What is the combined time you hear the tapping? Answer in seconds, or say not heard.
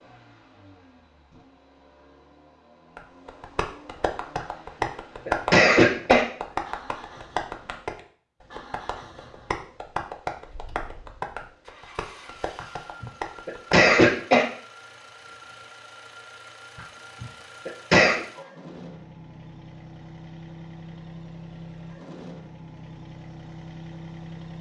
11 s.